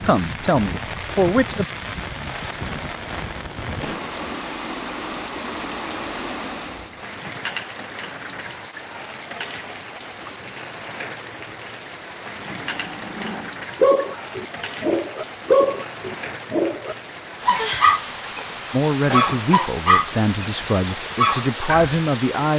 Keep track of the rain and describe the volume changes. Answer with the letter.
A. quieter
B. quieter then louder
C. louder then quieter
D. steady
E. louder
D.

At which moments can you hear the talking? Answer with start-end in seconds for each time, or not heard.
0.0-1.6, 18.7-22.5.